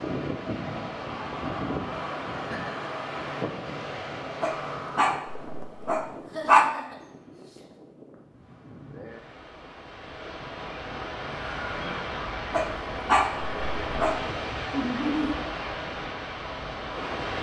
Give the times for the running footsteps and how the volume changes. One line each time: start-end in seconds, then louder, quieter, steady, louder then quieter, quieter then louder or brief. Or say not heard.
not heard.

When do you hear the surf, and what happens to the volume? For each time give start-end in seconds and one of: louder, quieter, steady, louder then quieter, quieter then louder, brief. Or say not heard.
0.0-17.3 quieter then louder.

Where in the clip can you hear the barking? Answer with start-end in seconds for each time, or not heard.
4.4-6.8, 12.5-14.2.